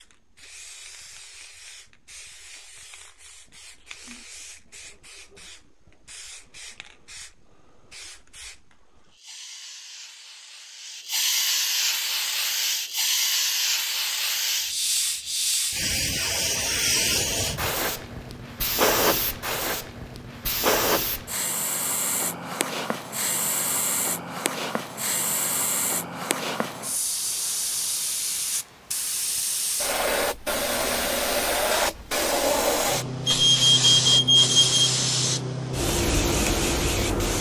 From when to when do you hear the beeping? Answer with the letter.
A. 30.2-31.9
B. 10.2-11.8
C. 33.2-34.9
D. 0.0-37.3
C.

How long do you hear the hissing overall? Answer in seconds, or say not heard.
37 s.